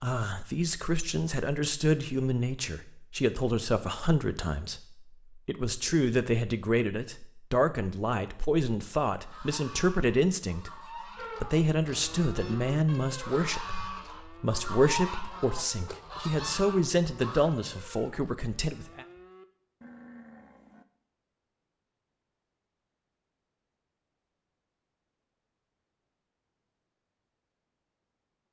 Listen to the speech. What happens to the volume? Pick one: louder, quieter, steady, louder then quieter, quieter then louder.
steady.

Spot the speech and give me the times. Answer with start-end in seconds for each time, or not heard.
0.0-19.1.